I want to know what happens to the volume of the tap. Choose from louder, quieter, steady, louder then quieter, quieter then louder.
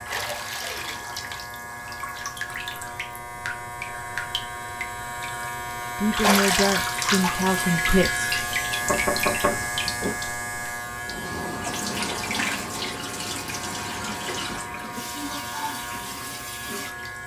louder then quieter.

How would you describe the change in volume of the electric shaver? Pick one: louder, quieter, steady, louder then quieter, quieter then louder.
louder then quieter.